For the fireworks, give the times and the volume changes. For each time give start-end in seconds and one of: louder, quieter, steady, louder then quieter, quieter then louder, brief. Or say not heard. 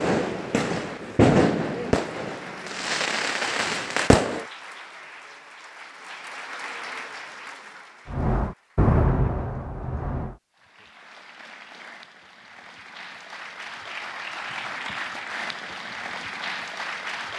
0.0-4.5 louder then quieter
8.1-10.3 brief.